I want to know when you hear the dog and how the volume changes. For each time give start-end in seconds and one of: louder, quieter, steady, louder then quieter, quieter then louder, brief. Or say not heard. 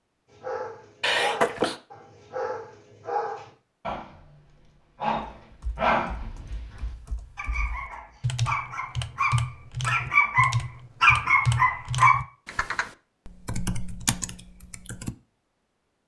0.3-12.2 louder.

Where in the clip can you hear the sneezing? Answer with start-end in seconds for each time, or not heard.
1.0-1.8.